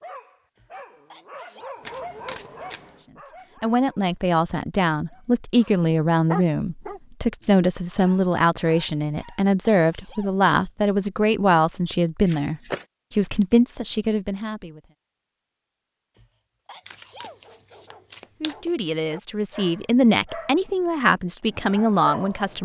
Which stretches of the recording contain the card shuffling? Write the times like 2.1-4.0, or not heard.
1.8-3.0, 12.2-12.8, 16.9-18.8.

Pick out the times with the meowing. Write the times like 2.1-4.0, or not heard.
not heard.